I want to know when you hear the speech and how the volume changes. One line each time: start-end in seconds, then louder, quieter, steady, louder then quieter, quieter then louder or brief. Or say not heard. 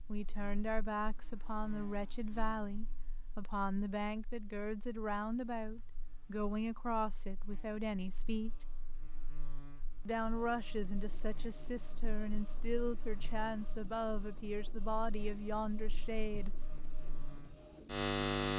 0.1-8.7 steady
10.1-16.5 steady.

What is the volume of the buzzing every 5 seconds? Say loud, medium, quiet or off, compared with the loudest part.
quiet, quiet, quiet, loud.